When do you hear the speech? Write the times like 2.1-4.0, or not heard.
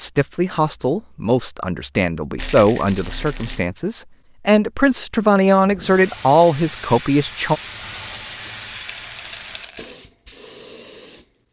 0.0-7.6.